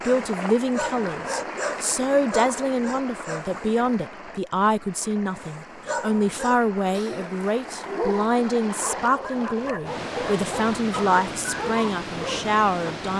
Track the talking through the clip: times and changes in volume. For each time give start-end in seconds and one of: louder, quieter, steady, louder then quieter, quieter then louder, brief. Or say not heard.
0.1-13.1 steady.